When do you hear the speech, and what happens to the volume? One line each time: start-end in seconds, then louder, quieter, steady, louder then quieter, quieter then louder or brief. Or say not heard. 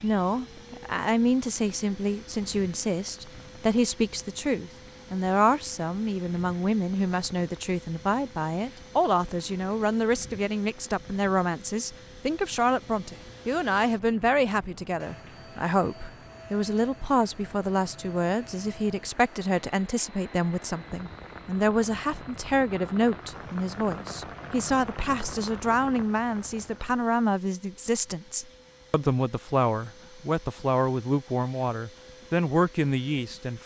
0.0-33.6 steady.